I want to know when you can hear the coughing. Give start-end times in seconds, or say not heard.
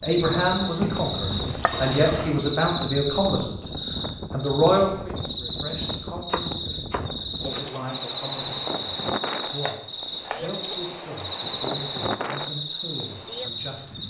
not heard.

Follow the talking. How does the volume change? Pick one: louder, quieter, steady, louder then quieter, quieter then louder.
quieter.